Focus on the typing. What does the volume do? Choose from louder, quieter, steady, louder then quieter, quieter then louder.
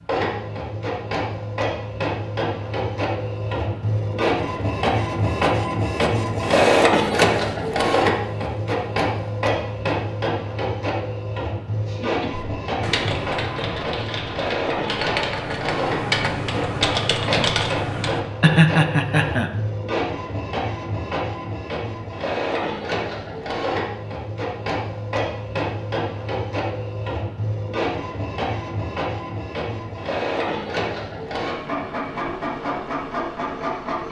louder.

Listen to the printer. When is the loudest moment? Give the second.
7 s.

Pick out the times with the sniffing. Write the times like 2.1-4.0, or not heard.
not heard.